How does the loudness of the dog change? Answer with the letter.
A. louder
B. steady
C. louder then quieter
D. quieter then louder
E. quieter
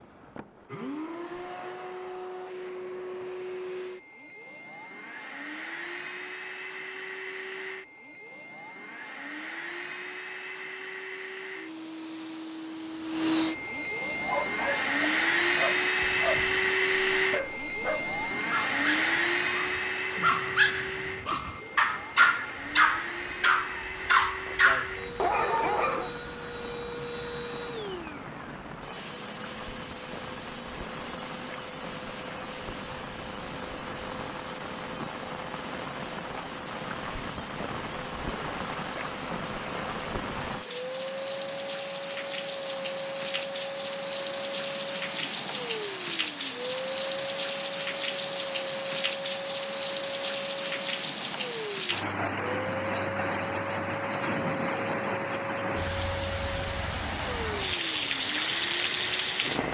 A.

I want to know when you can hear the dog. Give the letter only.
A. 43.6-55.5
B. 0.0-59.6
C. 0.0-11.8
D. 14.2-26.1
D.